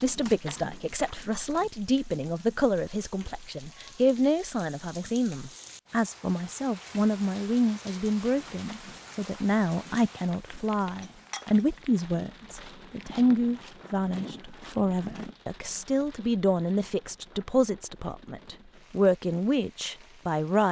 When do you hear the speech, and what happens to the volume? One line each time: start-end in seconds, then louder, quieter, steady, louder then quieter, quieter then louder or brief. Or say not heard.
0.0-20.6 steady.